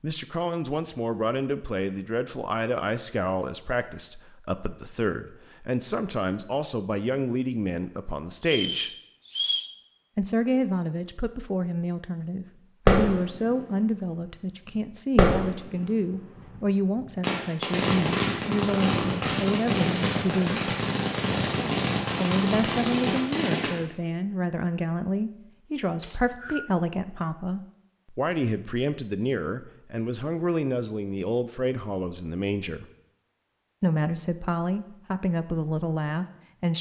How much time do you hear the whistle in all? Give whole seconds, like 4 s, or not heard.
2 s.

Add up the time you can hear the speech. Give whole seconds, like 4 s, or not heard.
33 s.